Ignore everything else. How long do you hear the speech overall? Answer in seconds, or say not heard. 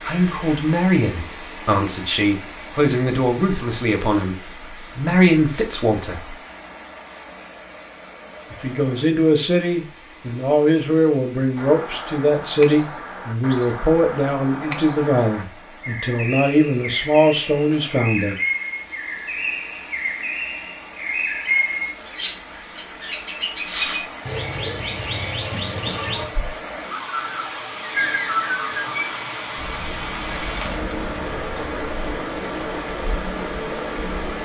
16 s.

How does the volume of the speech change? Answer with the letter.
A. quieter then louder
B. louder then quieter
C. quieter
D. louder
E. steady
E.